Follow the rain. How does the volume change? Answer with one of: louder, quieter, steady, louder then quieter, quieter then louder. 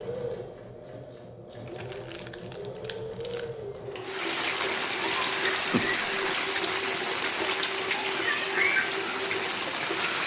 steady.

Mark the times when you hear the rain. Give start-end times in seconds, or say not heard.
4.0-10.2.